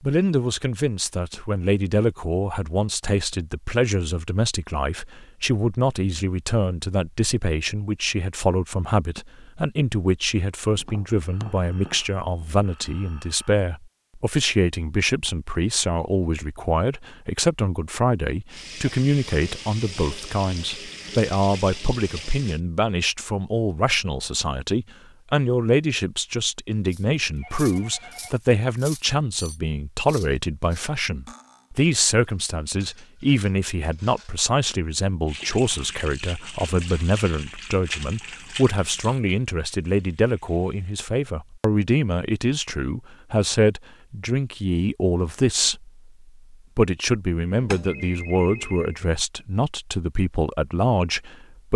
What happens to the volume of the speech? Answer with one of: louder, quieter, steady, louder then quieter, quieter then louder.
steady.